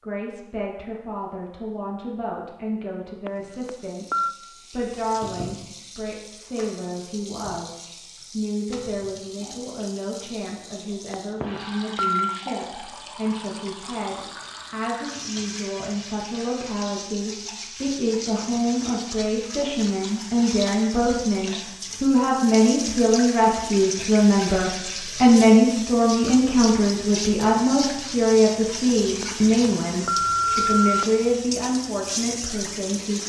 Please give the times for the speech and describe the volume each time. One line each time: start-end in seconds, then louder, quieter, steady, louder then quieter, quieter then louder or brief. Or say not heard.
0.0-33.2 louder.